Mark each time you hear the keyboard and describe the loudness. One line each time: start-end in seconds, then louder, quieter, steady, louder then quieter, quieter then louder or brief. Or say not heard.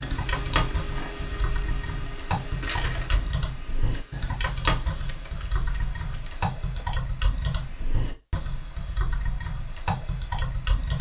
0.0-10.9 steady.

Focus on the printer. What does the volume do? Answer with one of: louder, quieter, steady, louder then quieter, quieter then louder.
quieter.